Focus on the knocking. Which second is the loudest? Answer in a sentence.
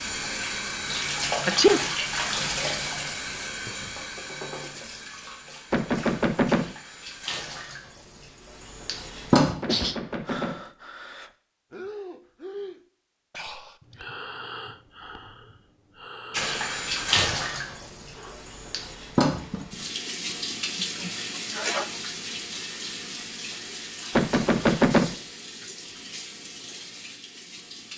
The loudest moment of the knocking is at 25 seconds.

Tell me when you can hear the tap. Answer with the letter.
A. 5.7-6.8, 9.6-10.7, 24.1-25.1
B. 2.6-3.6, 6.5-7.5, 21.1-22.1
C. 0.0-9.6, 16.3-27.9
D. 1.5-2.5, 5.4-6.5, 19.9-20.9
C.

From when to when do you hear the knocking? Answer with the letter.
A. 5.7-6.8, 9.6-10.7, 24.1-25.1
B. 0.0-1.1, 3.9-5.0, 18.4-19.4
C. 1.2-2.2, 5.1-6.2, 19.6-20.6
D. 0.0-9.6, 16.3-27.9
A.